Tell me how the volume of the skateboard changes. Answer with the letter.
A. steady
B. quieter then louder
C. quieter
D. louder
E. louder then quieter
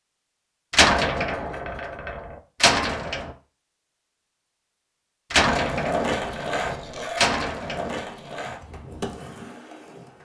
C.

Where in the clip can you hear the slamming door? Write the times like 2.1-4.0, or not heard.
0.7-3.3, 5.3-7.9.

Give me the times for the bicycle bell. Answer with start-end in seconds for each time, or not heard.
not heard.